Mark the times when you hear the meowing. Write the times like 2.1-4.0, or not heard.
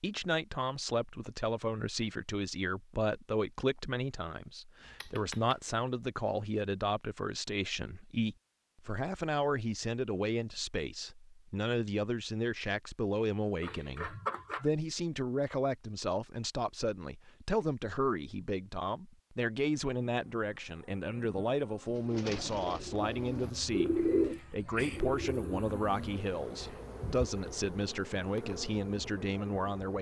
4.8-5.5, 13.6-14.7, 23.9-25.0.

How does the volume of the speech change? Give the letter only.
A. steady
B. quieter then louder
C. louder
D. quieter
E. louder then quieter
A.